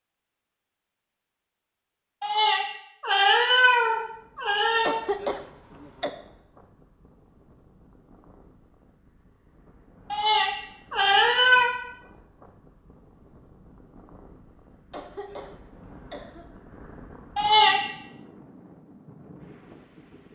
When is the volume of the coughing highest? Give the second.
5 s.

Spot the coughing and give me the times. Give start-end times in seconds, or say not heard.
4.8-6.1, 14.9-16.4.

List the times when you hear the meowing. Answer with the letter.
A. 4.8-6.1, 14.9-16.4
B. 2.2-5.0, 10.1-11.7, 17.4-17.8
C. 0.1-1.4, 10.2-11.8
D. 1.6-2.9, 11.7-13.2
B.